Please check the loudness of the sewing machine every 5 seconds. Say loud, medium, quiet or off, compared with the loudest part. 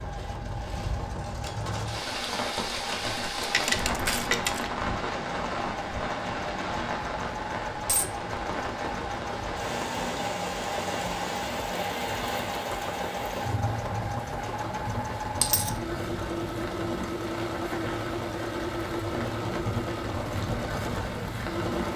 medium, loud, loud, loud, loud.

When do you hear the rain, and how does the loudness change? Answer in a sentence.
The rain can be heard from 0.0 to 21.9 s, at a steady volume.